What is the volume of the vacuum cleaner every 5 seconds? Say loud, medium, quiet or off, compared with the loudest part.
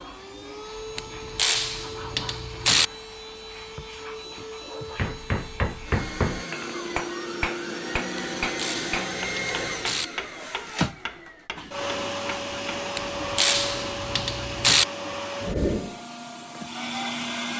medium, loud, loud, loud.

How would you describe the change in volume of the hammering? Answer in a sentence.
The loudness of the hammering goes down.